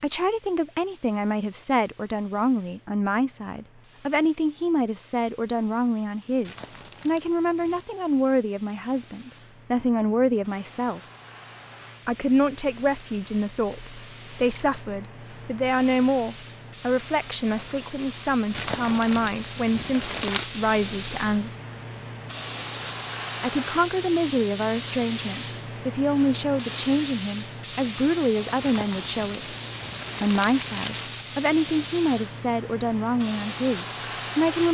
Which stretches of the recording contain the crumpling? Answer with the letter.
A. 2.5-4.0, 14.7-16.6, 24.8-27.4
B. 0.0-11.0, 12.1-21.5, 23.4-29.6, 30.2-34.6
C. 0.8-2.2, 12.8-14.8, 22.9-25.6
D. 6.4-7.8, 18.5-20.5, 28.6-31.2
D.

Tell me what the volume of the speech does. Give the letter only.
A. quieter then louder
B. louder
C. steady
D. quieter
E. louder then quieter
C.